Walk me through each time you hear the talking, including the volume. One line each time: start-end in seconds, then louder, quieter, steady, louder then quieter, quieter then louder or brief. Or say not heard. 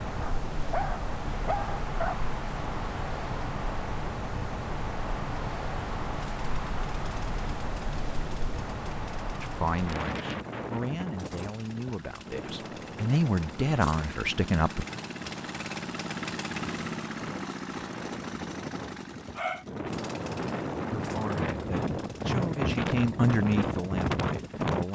9.4-14.8 louder
20.9-24.9 louder then quieter.